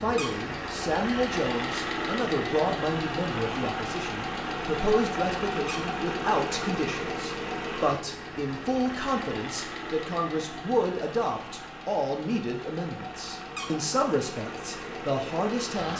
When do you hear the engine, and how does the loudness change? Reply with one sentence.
You can hear the engine from 0.0 to 15.9 s, getting quieter.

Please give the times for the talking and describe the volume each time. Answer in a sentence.
The talking can be heard from 0.0 to 15.9 s, at a steady volume.